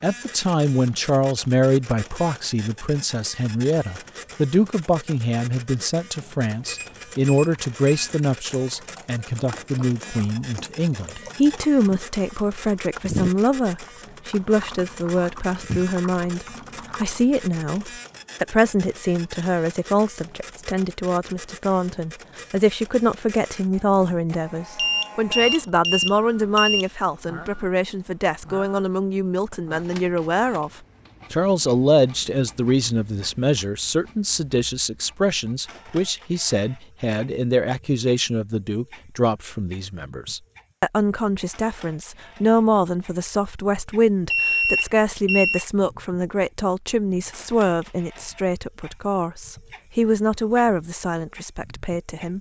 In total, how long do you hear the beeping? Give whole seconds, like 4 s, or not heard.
5 s.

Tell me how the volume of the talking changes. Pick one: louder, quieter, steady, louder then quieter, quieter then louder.
steady.